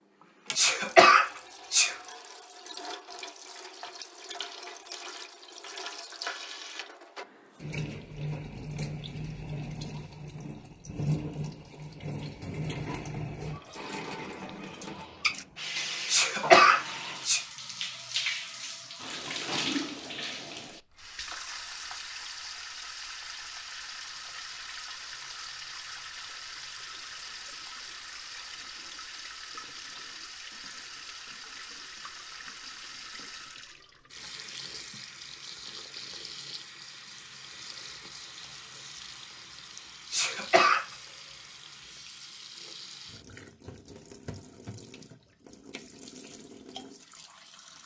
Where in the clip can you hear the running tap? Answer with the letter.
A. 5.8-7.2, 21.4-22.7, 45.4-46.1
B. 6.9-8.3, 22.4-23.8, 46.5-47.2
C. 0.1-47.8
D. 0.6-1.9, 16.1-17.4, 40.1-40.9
C.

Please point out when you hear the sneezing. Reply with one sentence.
The sneezing can be heard from 0.6 to 1.9 s, from 16.1 to 17.4 s and from 40.1 to 40.9 s.